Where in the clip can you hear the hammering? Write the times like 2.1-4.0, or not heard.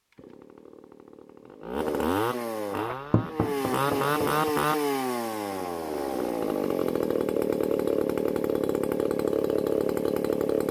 2.6-4.5.